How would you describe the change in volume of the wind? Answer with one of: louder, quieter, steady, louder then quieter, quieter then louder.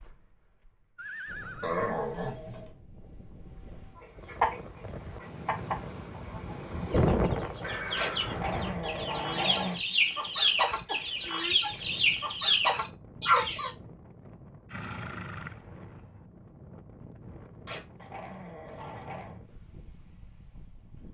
louder then quieter.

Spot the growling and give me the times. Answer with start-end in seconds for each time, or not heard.
1.6-2.7, 8.0-9.8, 17.6-19.4.